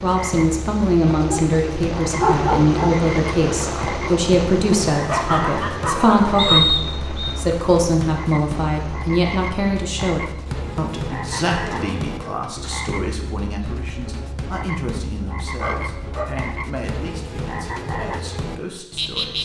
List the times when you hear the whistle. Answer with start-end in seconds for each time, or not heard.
6.3-7.3.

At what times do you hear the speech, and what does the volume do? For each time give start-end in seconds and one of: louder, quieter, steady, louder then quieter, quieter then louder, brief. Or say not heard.
0.0-19.4 quieter.